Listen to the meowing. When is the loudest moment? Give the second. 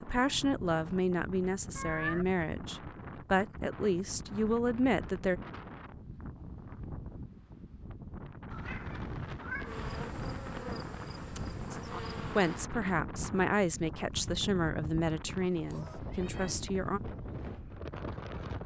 2 s.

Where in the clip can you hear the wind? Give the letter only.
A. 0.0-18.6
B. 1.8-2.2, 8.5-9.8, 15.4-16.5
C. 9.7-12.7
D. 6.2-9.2
A.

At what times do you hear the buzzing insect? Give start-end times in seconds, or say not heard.
9.7-12.7.